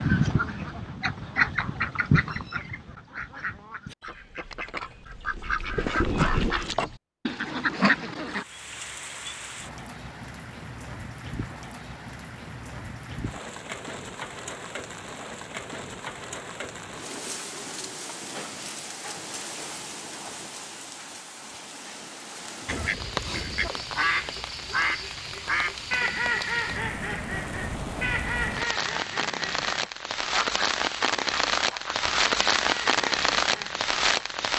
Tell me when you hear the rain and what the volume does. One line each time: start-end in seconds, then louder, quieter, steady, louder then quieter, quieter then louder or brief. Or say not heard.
8.2-34.5 louder.